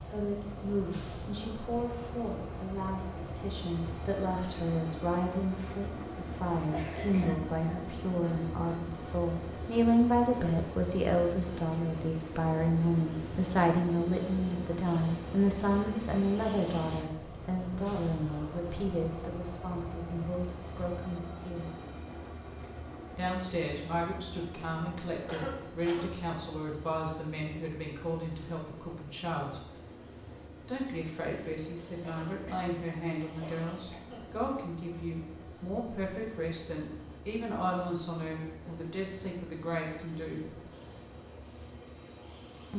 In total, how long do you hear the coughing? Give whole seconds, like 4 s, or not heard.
4 s.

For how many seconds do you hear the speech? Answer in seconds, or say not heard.
38 s.